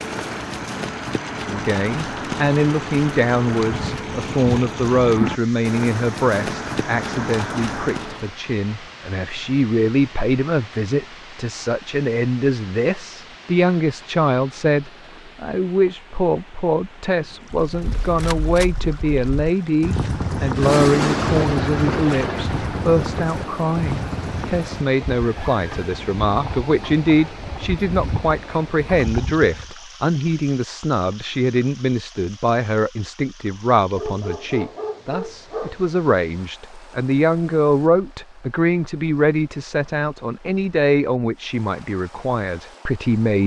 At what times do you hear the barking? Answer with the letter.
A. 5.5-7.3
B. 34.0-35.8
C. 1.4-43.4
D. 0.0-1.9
B.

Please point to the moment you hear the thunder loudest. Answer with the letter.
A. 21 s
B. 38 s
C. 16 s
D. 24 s
A.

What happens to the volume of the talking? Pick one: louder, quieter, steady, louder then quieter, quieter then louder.
steady.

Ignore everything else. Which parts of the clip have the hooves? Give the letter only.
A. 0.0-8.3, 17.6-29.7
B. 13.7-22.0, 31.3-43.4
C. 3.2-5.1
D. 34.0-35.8
A.